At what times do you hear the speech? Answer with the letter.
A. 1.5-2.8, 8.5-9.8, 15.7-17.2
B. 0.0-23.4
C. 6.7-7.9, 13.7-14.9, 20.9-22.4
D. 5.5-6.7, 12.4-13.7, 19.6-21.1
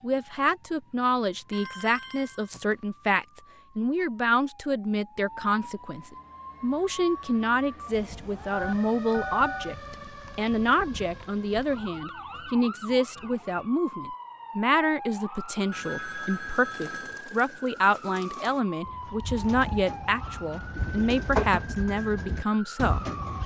B.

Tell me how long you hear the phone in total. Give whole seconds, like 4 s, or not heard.
4 s.